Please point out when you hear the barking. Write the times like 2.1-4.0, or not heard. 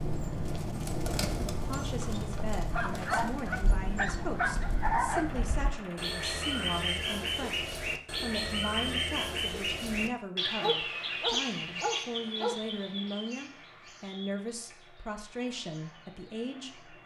2.7-5.4, 10.6-12.6.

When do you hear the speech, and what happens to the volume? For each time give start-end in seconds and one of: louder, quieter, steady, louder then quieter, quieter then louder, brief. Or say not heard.
1.6-17.0 steady.